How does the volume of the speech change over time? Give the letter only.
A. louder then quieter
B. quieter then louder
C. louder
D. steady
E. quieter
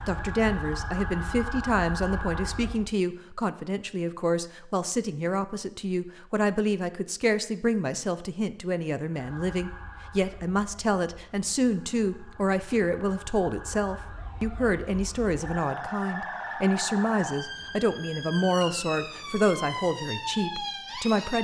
D.